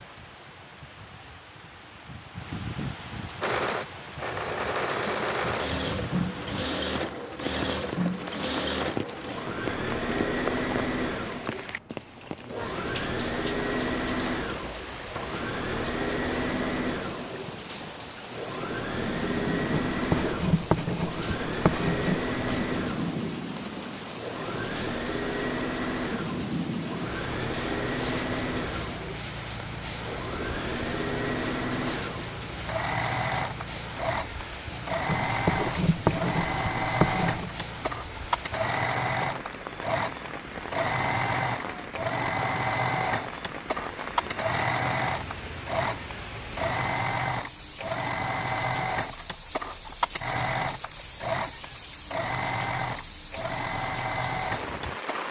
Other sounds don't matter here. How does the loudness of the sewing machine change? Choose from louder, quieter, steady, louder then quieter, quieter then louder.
steady.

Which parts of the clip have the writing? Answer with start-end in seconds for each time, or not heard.
19.7-22.6, 35.0-37.5.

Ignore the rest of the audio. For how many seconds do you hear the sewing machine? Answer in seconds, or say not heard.
52 s.